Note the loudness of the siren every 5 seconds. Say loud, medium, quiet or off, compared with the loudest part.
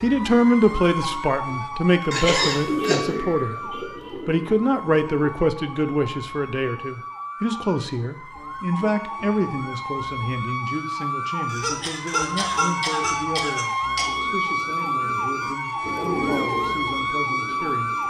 medium, medium, loud, loud.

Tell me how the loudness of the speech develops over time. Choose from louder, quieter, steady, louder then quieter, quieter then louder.
quieter.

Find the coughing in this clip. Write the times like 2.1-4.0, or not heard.
2.1-3.0, 11.5-14.1.